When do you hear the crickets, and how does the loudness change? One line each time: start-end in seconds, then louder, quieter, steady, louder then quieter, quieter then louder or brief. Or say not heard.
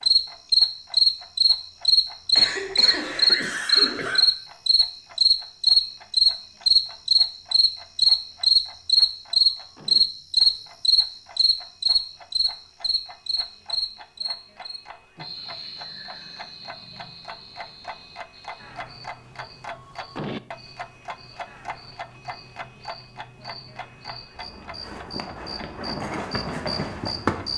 0.0-27.5 quieter then louder.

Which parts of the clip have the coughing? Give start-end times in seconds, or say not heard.
2.3-4.2.